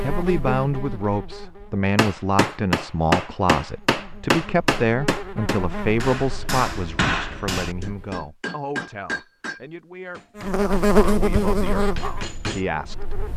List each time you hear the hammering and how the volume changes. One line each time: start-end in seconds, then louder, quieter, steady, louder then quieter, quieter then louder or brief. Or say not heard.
1.9-12.6 quieter.